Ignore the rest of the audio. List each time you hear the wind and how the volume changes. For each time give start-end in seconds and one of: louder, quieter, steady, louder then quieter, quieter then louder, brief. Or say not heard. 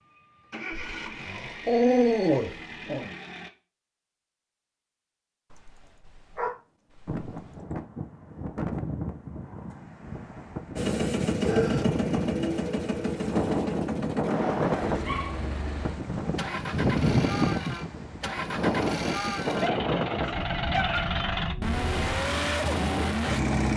7.0-23.7 louder then quieter.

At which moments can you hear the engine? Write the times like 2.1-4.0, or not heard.
0.0-3.5, 10.8-23.7.